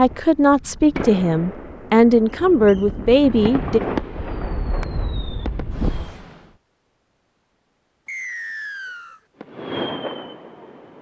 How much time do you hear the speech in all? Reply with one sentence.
You can hear the speech for 4 seconds altogether.